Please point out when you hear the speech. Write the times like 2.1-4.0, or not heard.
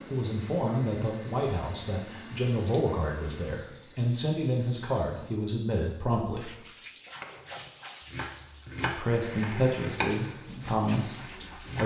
0.1-6.5, 8.9-11.8.